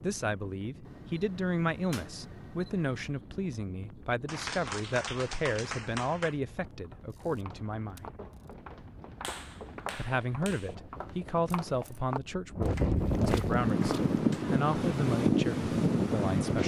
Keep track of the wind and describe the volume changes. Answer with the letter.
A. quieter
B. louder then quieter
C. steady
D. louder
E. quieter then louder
D.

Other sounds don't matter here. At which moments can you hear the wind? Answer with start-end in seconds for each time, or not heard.
0.0-16.6.